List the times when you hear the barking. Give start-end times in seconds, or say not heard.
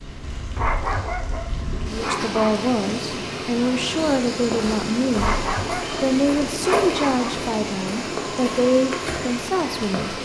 0.6-2.6, 5.2-7.4.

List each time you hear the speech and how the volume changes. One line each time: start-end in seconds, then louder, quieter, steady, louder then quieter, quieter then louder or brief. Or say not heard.
1.9-10.2 steady.